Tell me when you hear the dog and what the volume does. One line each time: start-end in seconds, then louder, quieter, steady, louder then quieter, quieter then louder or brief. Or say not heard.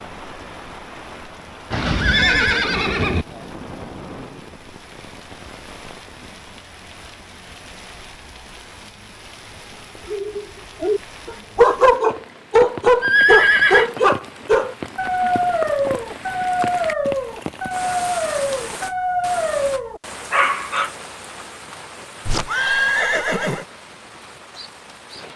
10.1-20.9 quieter.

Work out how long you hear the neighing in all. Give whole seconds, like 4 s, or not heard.
4 s.